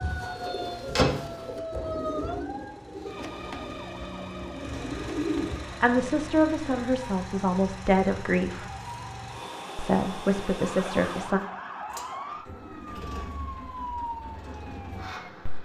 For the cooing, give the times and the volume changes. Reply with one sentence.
The cooing can be heard from 0.0 to 5.6 s, getting quieter then louder.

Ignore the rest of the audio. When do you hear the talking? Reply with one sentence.
The talking can be heard from 5.8 to 8.7 s and from 9.8 to 11.4 s.